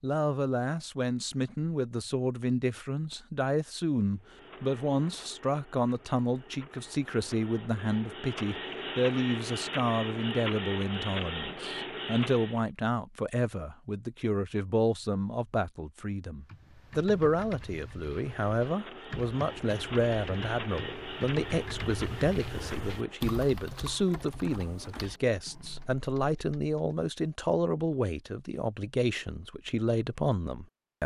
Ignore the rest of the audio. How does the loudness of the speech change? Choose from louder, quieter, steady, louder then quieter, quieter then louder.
steady.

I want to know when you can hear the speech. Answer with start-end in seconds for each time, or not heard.
0.0-31.0.